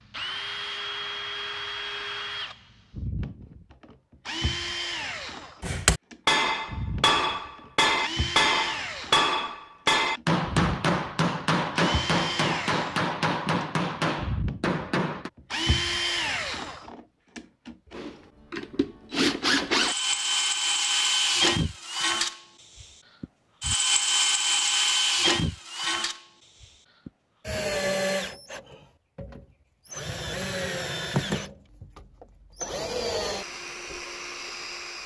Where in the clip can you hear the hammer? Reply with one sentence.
The hammer can be heard from 5.6 to 15.3 s.